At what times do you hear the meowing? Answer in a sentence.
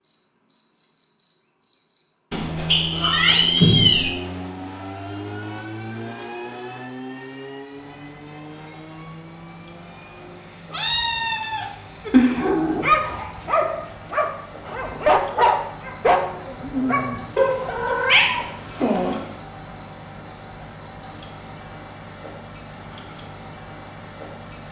You can hear the meowing from 2.3 to 4.1 s, from 10.7 to 12.4 s and from 17.4 to 19.2 s.